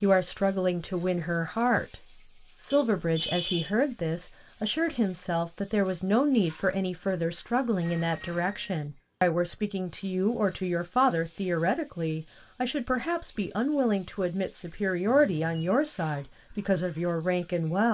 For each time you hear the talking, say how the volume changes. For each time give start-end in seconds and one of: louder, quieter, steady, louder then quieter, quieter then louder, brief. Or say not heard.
0.0-17.8 steady.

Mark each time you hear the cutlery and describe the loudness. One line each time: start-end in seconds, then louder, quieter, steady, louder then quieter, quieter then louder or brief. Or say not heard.
not heard.